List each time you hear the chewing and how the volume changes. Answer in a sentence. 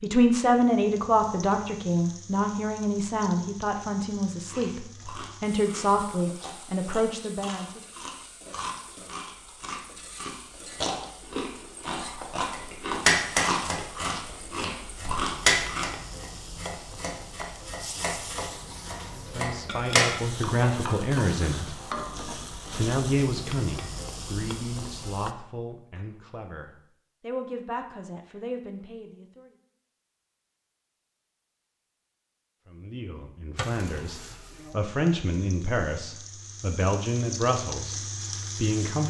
The chewing can be heard from 4.5 to 15.9 s, getting louder.